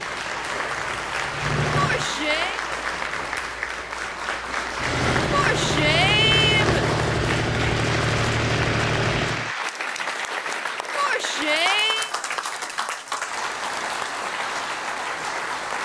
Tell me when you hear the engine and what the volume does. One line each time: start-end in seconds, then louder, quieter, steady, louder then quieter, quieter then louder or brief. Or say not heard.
0.0-2.1 brief
4.8-9.5 steady.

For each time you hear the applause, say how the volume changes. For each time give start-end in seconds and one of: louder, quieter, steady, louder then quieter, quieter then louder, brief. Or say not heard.
0.0-15.7 steady.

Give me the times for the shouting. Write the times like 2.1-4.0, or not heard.
1.8-2.6, 5.3-6.8, 10.9-12.1.